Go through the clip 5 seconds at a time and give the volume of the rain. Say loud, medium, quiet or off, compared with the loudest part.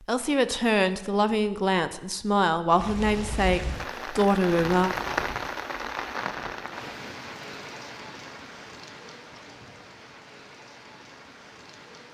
loud, loud, quiet.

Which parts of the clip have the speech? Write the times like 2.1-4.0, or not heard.
0.1-5.0.